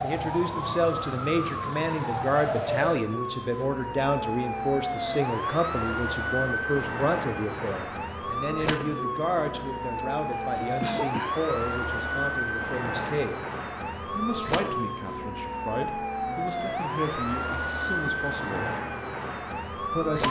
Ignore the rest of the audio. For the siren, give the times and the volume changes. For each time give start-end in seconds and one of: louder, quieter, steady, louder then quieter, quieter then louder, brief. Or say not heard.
0.0-20.2 steady.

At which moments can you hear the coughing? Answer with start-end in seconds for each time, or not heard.
9.9-11.3.